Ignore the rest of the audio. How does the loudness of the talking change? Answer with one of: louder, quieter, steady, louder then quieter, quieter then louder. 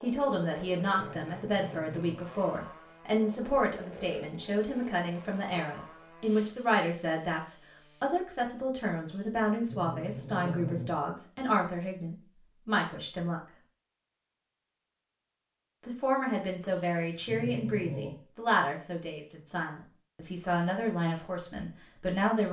steady.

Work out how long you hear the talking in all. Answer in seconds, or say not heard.
20 s.